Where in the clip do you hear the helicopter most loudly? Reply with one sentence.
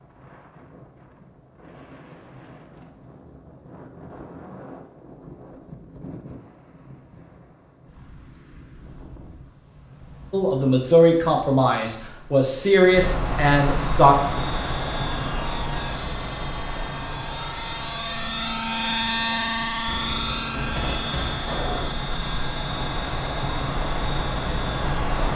The loudest moment of the helicopter is at 19 seconds.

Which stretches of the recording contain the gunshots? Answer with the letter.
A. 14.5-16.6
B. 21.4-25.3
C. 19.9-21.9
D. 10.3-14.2
C.